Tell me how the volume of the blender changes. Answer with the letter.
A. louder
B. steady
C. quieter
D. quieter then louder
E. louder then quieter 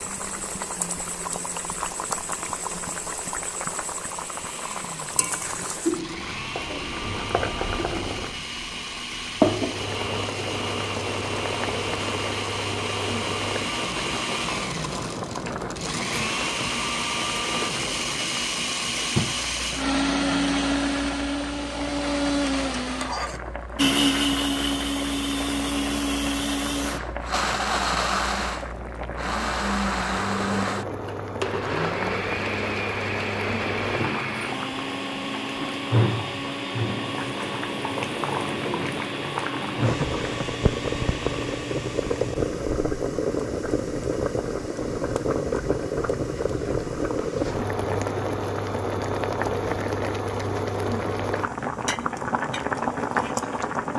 E.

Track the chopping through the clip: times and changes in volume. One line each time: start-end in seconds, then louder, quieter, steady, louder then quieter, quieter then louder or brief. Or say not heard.
not heard.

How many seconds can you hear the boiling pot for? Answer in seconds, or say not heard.
54 s.